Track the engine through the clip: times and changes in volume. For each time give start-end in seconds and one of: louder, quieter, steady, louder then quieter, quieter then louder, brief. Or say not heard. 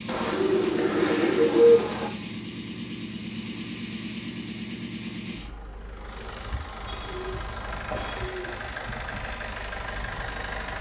0.0-10.7 steady.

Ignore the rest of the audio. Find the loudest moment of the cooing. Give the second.
2 s.